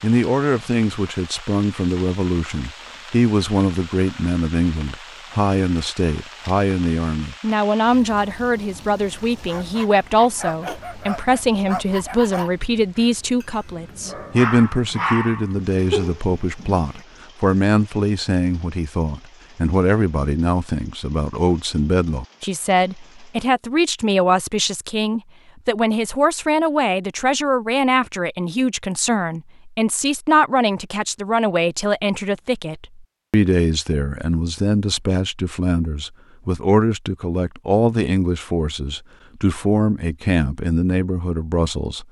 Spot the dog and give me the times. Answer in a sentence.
You can hear the dog from 9.4 to 17.0 s.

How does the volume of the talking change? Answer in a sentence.
The loudness of the talking stays about the same.